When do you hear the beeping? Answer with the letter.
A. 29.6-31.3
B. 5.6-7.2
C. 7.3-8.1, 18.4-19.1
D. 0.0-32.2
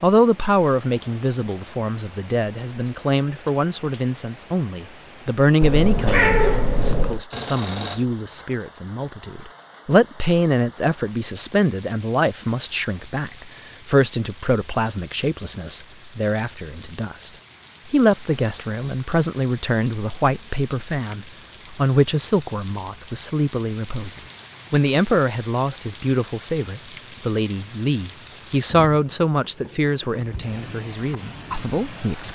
C.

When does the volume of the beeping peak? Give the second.
8 s.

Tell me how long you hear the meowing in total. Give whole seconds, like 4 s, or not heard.
2 s.